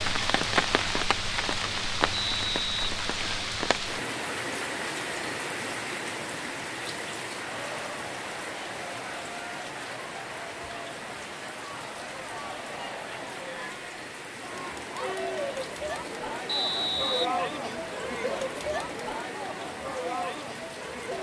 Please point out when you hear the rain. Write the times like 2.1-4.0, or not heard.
0.0-21.1.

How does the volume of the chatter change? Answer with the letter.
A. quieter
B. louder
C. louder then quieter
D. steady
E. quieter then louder
B.